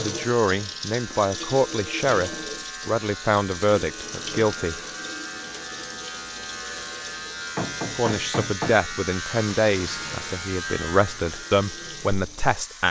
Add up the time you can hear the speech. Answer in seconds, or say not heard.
10 s.